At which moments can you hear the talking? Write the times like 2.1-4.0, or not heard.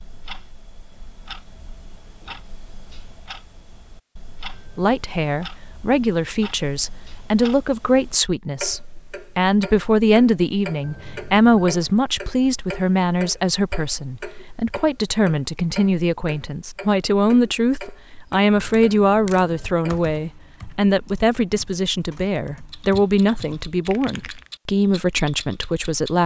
4.8-26.2.